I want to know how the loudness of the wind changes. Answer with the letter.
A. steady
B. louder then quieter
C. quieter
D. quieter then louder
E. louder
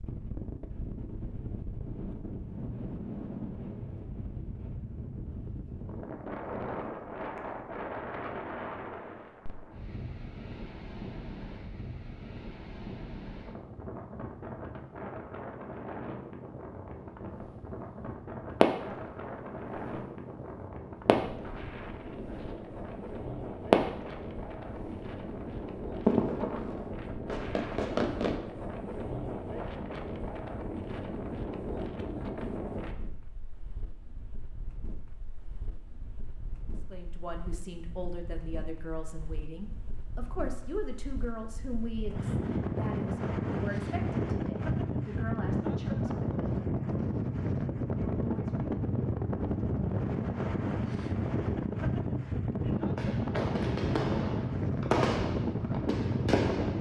E.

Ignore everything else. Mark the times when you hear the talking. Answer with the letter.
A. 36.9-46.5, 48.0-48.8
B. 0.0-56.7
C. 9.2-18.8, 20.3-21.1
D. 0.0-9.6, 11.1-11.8
A.